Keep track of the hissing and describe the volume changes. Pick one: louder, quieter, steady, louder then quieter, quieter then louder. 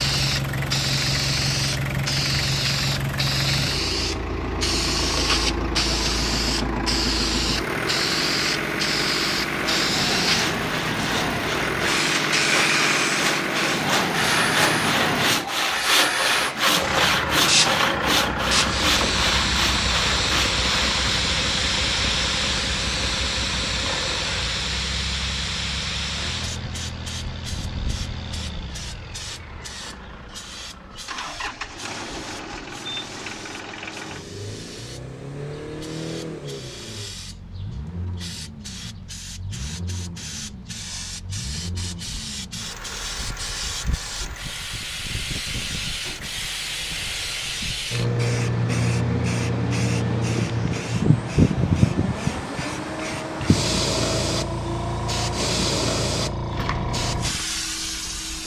quieter then louder.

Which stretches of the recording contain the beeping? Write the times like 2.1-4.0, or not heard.
not heard.